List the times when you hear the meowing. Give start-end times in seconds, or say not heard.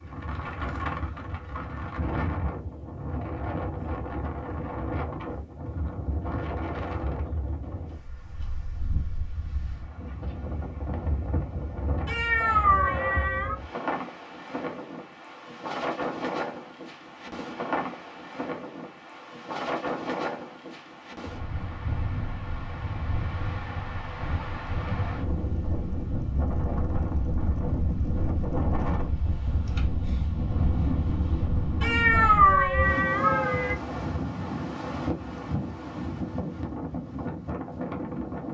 12.1-13.6, 31.8-33.8.